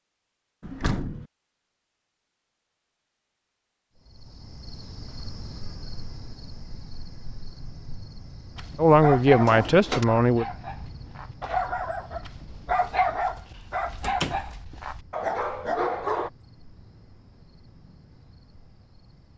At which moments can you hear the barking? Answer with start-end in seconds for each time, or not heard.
8.6-16.3.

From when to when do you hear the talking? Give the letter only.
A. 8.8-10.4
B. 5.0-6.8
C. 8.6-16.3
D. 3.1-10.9
A.